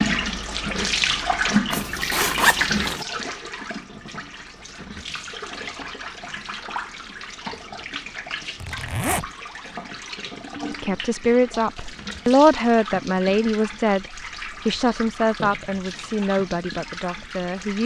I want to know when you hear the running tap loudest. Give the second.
1 s.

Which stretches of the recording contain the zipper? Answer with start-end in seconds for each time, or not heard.
1.7-3.0, 8.6-9.3, 15.3-16.1.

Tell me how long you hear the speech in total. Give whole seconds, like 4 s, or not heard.
7 s.